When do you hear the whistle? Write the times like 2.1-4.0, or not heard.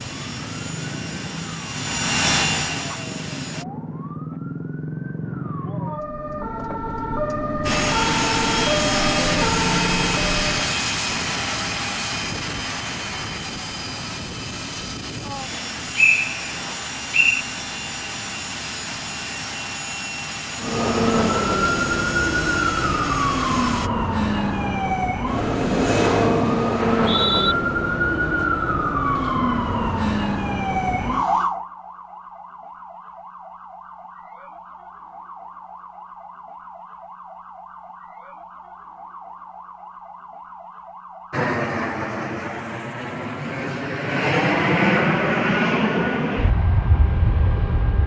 15.9-17.4, 26.8-27.6.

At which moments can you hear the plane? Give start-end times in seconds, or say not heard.
0.0-3.6, 7.7-23.9, 41.3-48.0.